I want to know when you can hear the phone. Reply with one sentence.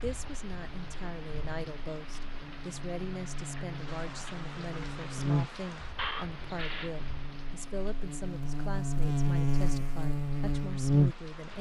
The phone can be heard from 6.0 to 6.9 s.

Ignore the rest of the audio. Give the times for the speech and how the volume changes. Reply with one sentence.
You can hear the speech from 0.0 to 11.5 s, at a steady volume.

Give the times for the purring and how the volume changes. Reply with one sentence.
You can't hear the purring here.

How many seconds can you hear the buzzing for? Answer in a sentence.
The buzzing can be heard for 11 seconds in total.